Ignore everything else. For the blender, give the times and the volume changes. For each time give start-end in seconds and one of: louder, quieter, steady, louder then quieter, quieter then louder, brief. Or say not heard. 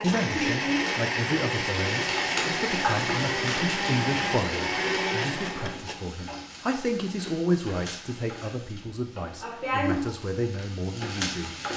0.0-6.0 steady.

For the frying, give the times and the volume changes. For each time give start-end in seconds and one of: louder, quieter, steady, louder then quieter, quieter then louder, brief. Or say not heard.
0.0-11.7 quieter then louder.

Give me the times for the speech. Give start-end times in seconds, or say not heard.
0.0-11.6.